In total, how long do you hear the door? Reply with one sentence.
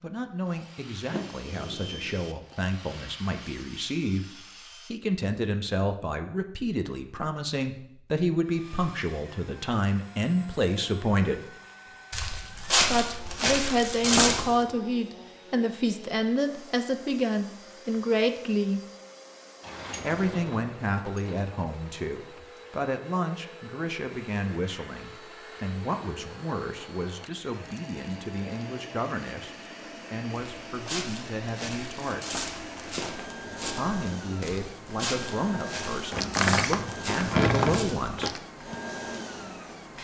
You can hear the door for 5 seconds altogether.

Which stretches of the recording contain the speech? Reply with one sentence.
The speech can be heard from 0.0 to 11.5 s, from 12.9 to 18.8 s, from 20.0 to 32.3 s and from 33.7 to 38.4 s.